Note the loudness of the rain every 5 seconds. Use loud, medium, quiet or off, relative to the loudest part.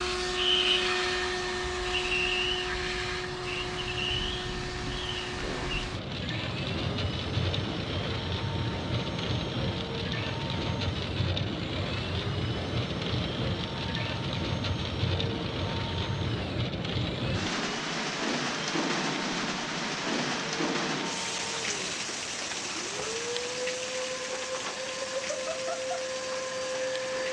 medium, loud, loud, loud, loud, medium.